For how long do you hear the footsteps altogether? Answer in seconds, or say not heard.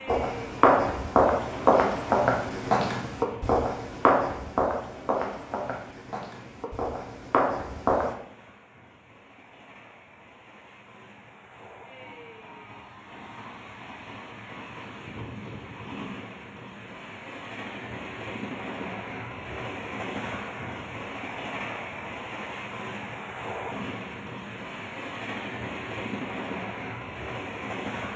8 s.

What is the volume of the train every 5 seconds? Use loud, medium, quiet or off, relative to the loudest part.
medium, quiet, medium, loud, loud, loud.